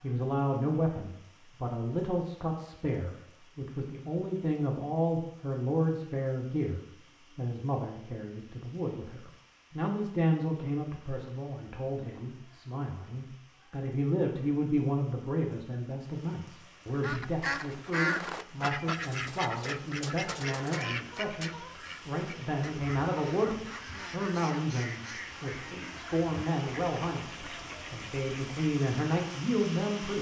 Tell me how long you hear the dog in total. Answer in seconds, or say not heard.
not heard.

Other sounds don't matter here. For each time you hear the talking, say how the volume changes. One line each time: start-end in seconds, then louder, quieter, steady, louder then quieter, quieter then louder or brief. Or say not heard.
0.0-30.1 steady.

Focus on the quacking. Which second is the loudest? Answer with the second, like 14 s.
18 s.